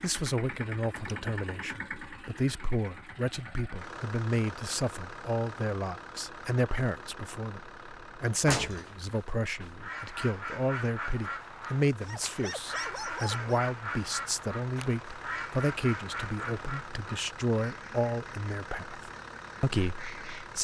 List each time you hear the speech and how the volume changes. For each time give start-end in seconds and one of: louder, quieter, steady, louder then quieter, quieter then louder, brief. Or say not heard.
0.0-20.5 steady.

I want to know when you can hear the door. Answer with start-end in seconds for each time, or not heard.
8.4-9.7.